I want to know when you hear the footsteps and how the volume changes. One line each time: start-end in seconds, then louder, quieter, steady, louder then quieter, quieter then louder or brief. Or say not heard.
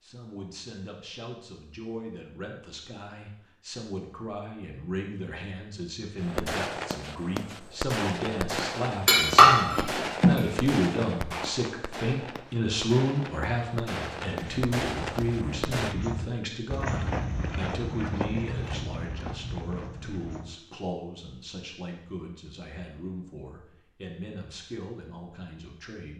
14.3-20.6 louder then quieter.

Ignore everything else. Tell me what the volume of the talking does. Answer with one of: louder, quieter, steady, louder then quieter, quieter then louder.
louder then quieter.